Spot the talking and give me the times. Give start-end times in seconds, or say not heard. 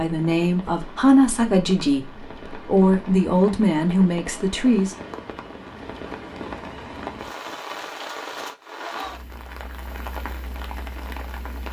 0.0-5.0.